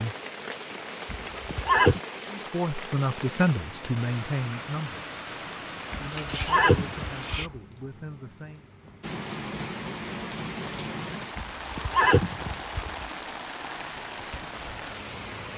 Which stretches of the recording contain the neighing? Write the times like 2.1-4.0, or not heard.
1.1-2.0, 5.9-7.5, 11.3-12.9.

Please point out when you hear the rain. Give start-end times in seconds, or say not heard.
0.0-15.5.